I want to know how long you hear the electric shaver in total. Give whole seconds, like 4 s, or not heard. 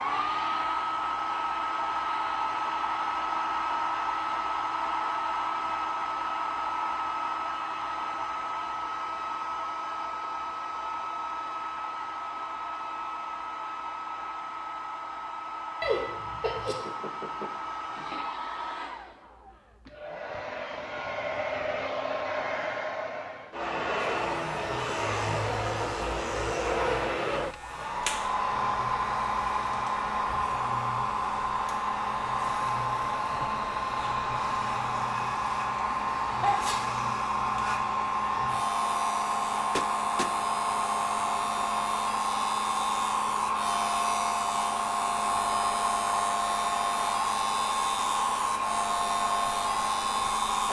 27 s.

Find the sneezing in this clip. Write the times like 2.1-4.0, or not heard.
15.8-16.8, 35.9-36.8.